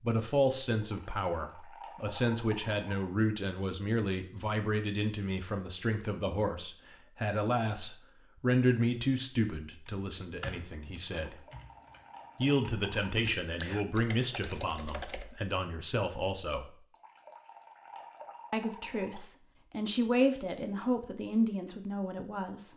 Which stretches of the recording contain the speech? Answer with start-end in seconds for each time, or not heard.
0.0-11.4, 12.3-16.6, 18.5-22.7.